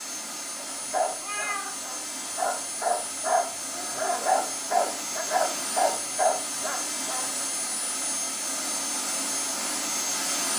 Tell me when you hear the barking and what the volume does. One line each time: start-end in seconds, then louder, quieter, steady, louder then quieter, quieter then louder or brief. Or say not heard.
0.6-7.2 louder.